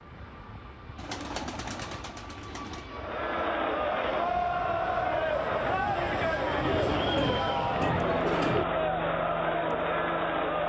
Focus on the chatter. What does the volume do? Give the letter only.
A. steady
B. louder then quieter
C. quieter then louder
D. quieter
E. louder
A.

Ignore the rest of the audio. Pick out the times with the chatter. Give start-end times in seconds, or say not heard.
2.9-10.6.